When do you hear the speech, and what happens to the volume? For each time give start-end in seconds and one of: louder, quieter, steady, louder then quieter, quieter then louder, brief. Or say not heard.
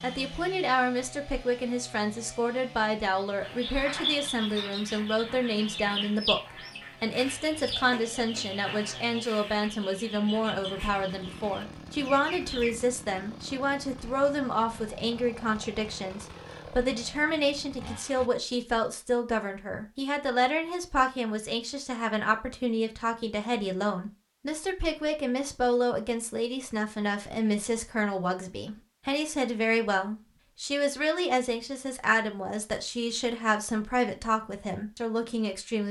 0.0-35.8 steady.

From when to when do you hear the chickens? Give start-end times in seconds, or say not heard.
3.4-12.8.